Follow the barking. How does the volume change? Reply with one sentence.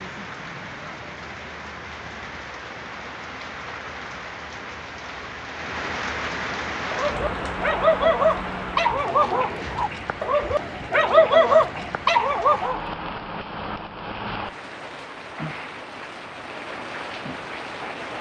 The loudness of the barking goes down, then up.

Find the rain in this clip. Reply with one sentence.
The rain can be heard from 0.0 to 18.1 s.